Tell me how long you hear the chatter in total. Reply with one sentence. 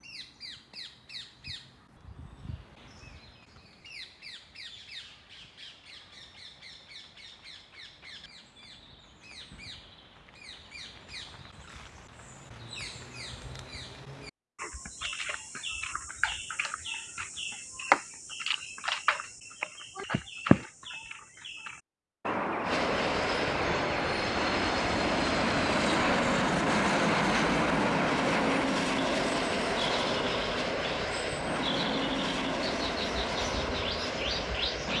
You can't hear the chatter here.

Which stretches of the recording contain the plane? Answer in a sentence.
You can hear the plane from 22.6 to 34.9 s.